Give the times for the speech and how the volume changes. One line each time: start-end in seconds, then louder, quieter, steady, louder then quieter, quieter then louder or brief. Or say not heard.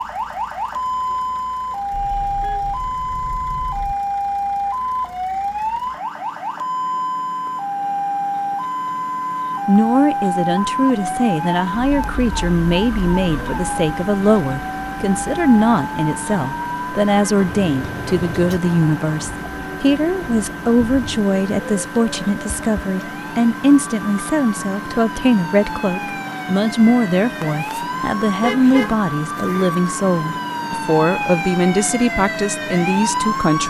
9.7-33.6 steady.